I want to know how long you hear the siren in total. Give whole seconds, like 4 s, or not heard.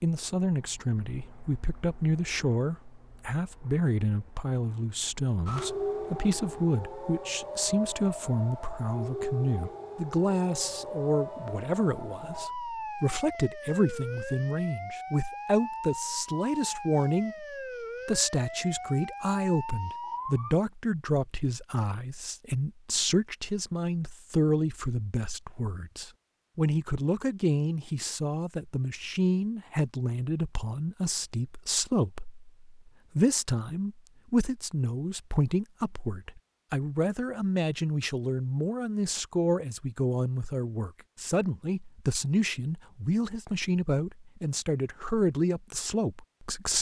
15 s.